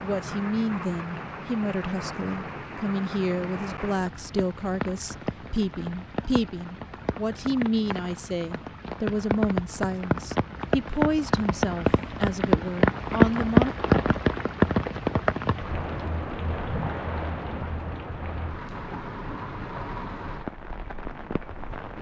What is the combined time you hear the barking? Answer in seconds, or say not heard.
not heard.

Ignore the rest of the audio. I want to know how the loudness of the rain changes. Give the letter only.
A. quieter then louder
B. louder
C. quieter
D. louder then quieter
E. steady
D.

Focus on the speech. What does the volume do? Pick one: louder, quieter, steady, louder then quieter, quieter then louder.
steady.